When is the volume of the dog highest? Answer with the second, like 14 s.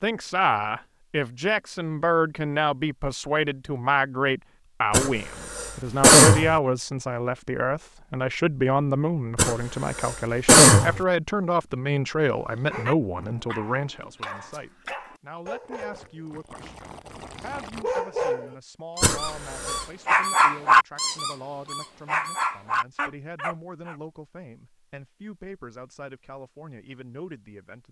21 s.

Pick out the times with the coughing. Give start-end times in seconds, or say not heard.
4.9-6.5, 9.3-11.0, 19.0-19.9.